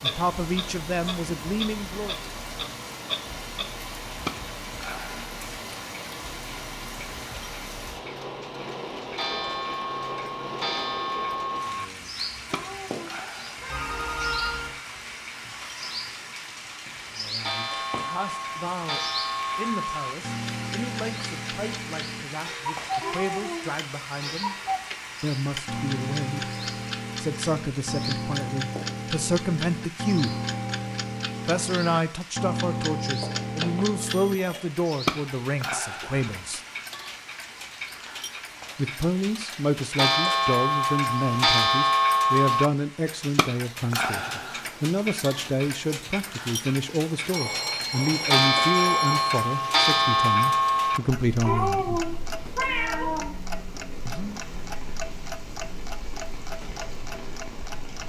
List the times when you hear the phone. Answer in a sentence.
You can hear the phone from 13.7 to 14.8 s, from 33.2 to 34.6 s and from 47.4 to 49.5 s.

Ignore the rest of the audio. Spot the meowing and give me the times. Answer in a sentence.
You can hear the meowing from 12.5 to 14.3 s, from 23.0 to 23.8 s and from 51.5 to 53.4 s.